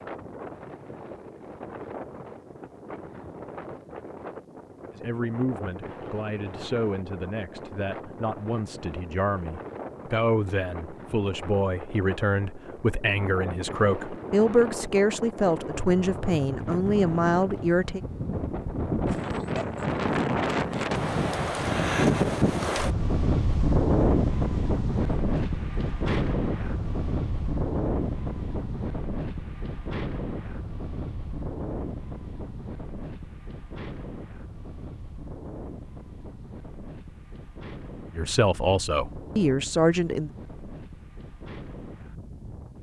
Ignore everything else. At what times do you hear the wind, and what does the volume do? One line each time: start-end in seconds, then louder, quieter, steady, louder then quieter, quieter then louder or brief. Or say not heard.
0.0-42.7 louder then quieter.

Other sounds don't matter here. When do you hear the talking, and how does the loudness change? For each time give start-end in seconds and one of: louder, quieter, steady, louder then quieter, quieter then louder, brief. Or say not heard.
4.9-18.0 louder
38.1-40.3 brief.